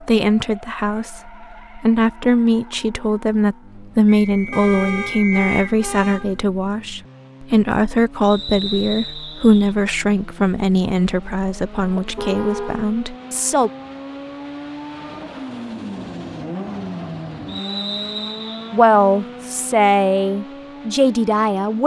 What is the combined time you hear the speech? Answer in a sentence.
You can hear the speech for 17 seconds altogether.